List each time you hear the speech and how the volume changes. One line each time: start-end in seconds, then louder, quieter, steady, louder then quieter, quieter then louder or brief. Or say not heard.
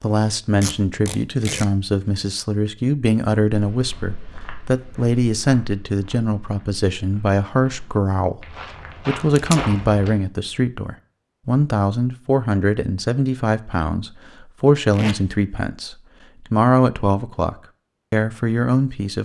0.0-19.2 steady.